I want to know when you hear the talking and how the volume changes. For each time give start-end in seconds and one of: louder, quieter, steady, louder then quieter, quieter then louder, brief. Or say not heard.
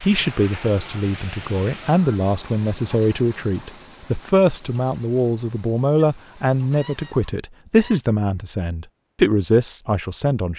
0.0-10.5 steady.